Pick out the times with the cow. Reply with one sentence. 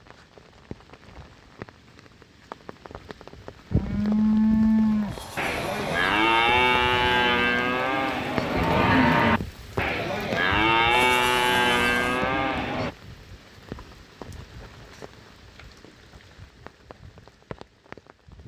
You can hear the cow from 3.7 to 12.9 s.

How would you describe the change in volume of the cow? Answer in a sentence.
The loudness of the cow stays about the same.